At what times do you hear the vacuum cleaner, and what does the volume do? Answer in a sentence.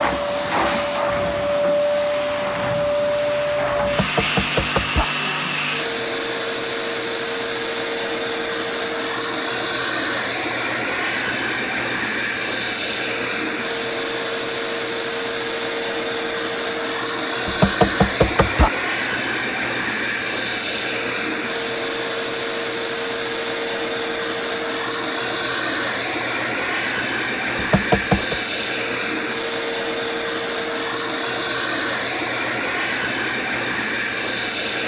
You can hear the vacuum cleaner from 0.0 to 34.8 s, at a steady volume.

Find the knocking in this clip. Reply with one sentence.
The knocking can be heard from 3.8 to 5.0 s, from 17.4 to 18.7 s and from 27.6 to 28.4 s.